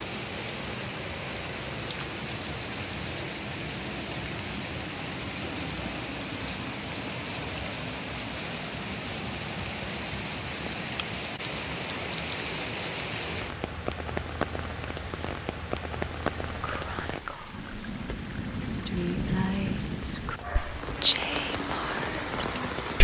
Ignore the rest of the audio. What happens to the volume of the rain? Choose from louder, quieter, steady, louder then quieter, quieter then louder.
steady.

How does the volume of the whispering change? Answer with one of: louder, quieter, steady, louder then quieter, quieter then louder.
louder then quieter.